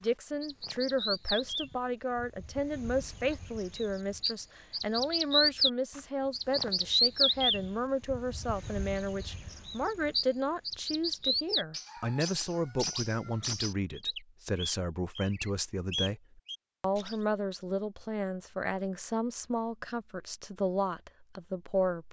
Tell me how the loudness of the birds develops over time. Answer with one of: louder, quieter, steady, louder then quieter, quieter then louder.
louder then quieter.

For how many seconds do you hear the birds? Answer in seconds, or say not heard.
17 s.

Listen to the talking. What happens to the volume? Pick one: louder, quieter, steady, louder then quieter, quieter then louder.
steady.